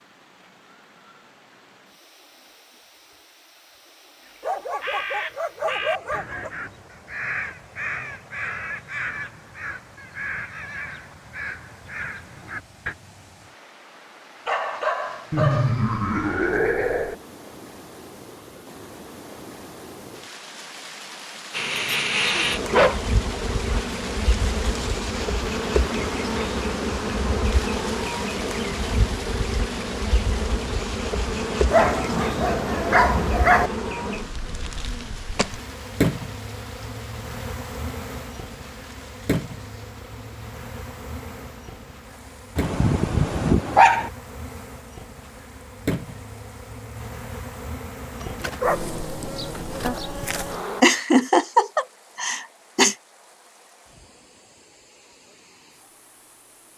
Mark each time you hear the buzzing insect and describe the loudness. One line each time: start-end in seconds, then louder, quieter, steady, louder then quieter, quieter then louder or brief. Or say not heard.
21.5-50.9 quieter.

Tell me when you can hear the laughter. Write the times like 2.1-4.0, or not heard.
15.3-17.1, 50.8-53.0.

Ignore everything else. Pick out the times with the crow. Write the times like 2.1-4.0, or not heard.
4.2-12.9.